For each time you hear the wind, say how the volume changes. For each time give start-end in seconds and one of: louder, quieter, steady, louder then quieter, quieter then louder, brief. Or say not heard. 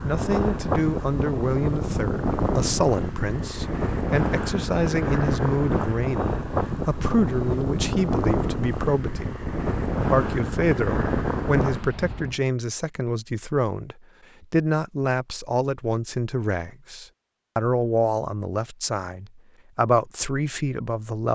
0.0-12.3 steady.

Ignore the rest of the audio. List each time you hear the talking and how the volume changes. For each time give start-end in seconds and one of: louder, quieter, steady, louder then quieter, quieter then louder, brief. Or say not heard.
0.0-21.2 steady.